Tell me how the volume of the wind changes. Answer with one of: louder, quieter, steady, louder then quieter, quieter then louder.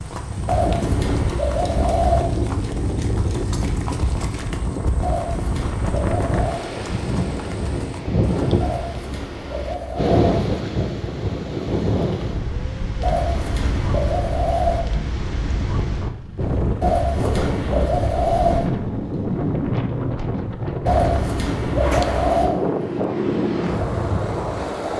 steady.